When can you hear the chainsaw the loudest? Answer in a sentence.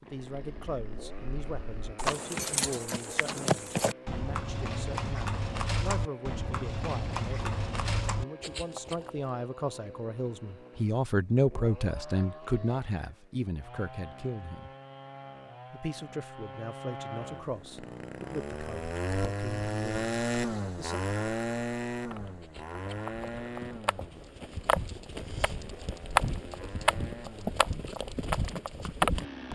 The loudest moment of the chainsaw is at 20 seconds.